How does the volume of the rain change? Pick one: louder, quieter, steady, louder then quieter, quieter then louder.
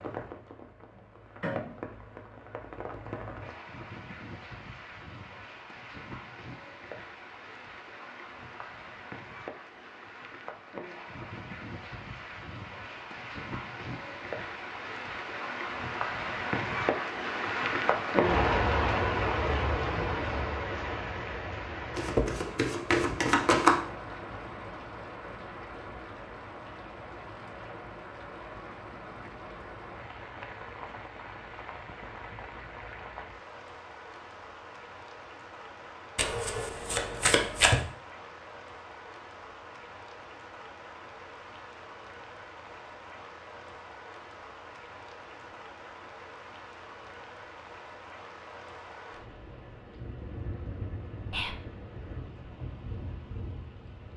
louder then quieter.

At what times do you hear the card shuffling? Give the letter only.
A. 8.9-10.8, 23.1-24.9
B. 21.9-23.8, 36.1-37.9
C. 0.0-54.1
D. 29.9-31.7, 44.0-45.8
B.